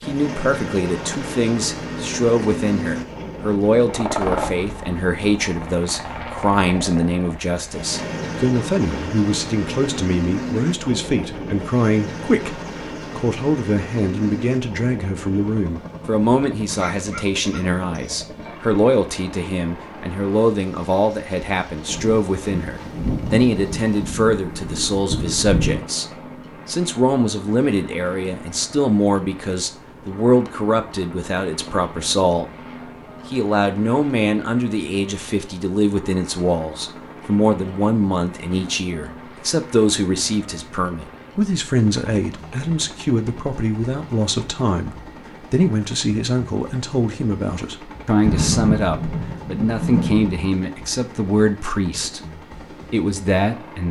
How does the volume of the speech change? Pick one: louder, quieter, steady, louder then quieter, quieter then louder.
steady.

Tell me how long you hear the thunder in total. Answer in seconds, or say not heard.
8 s.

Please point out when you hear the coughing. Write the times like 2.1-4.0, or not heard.
16.7-18.2.